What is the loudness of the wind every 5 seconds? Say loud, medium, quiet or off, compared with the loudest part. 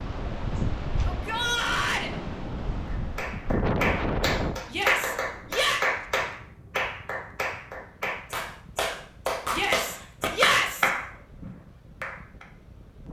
loud, quiet, quiet.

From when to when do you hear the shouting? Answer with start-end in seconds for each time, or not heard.
1.1-2.1, 4.7-5.8, 9.5-10.9.